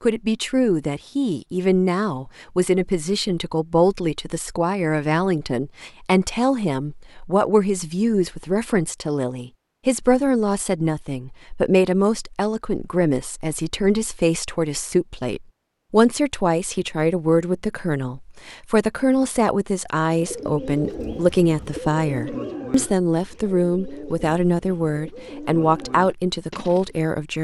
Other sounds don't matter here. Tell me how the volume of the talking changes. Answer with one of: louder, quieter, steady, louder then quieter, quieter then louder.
steady.